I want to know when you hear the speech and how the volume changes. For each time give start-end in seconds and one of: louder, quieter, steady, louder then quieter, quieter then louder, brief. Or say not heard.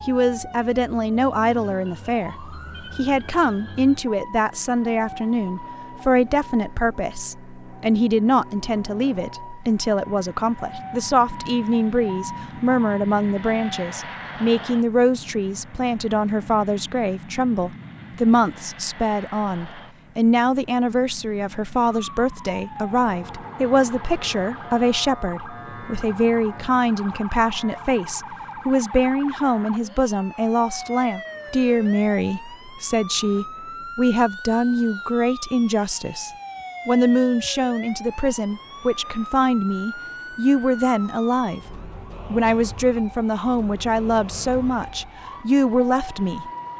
0.1-46.5 steady.